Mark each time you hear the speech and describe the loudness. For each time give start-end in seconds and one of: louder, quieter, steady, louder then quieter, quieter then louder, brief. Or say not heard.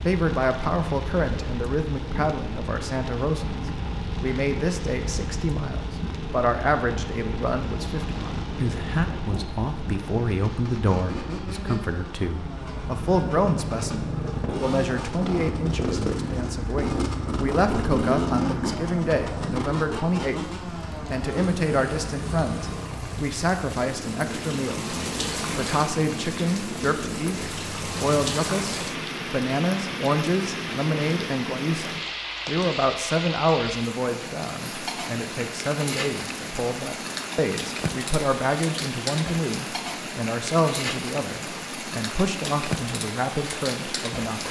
0.0-44.4 steady.